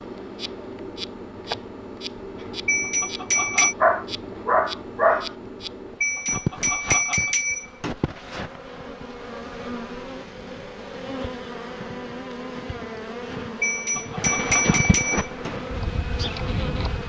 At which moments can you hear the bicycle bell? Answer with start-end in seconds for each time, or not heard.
2.6-3.8, 6.0-7.9, 13.6-15.5.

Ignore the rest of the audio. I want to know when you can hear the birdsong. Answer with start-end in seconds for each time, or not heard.
not heard.